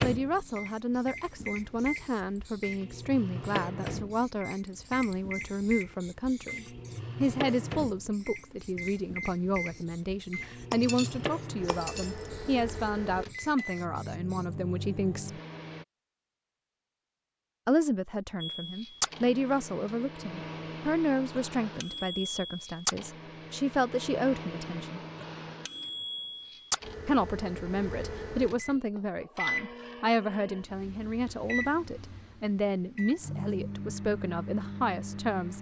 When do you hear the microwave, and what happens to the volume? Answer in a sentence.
The microwave can be heard from 0.0 to 15.8 s, at a steady volume; and from 18.4 to 35.5 s, at a steady volume.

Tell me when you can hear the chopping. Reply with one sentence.
The chopping can't be heard in this clip.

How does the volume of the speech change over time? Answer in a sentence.
The volume of the speech stays about the same.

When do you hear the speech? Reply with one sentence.
The speech can be heard from 0.0 to 15.4 s, from 17.6 to 25.0 s and from 27.1 to 35.5 s.